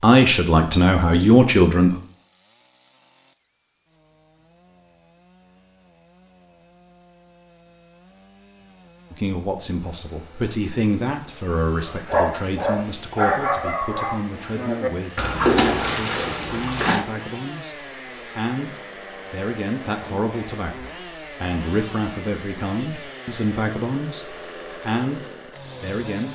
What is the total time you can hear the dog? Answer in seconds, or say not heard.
5 s.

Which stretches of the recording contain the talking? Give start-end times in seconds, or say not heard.
0.0-1.9, 9.1-26.2.